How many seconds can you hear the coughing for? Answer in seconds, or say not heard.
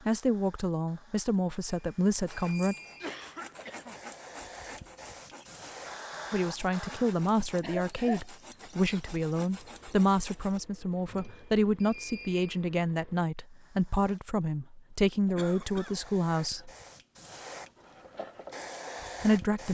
3 s.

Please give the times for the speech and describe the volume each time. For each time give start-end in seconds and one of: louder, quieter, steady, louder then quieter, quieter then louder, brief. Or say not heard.
0.1-2.8 brief
6.3-16.7 steady
19.2-19.7 brief.